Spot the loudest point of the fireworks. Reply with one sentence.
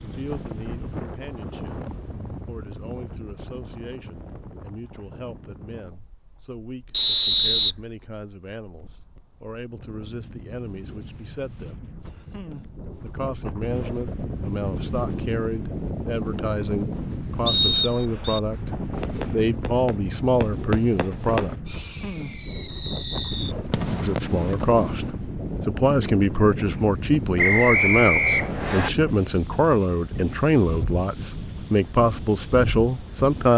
The loudest moment of the fireworks is at 22 seconds.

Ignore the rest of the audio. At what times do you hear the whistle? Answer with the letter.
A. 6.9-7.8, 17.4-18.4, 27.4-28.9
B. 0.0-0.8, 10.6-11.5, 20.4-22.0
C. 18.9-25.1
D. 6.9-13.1
A.